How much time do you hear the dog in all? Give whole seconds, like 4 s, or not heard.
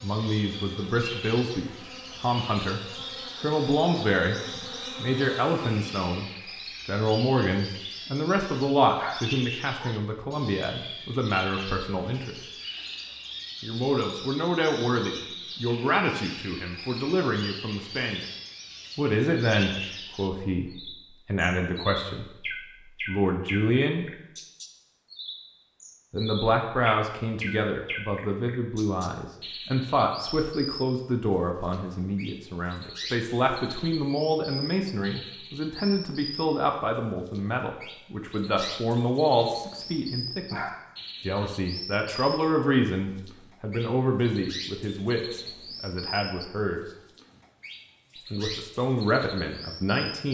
2 s.